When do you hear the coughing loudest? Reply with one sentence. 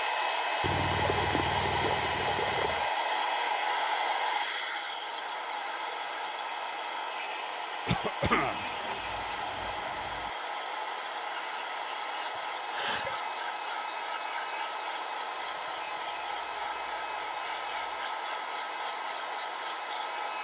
The loudest moment of the coughing is at 8 seconds.